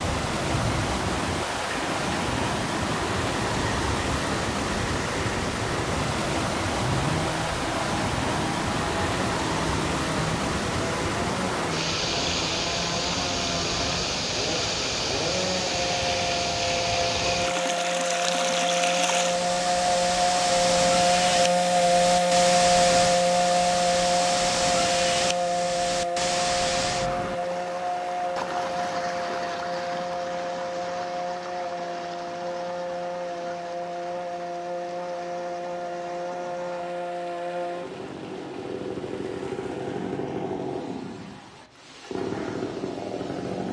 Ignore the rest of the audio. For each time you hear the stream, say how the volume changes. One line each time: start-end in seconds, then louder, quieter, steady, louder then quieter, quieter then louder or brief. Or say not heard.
0.0-43.6 quieter.